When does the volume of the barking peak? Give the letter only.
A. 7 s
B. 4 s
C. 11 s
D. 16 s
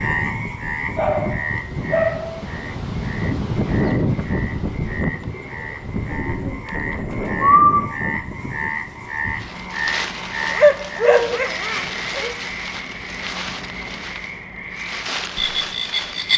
C.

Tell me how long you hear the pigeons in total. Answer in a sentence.
The pigeons can be heard for 2 seconds in total.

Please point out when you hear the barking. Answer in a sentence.
You can hear the barking from 0.9 to 2.4 s and from 10.4 to 12.3 s.